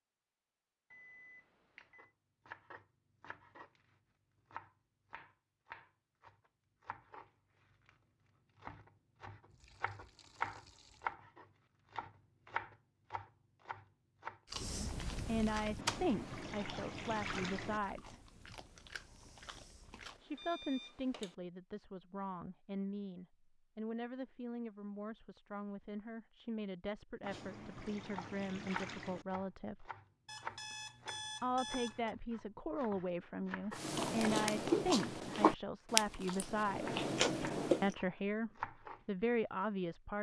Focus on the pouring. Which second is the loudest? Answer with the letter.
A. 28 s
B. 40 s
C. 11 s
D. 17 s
D.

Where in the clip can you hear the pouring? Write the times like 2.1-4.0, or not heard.
9.5-11.2, 15.8-17.8, 27.2-29.2.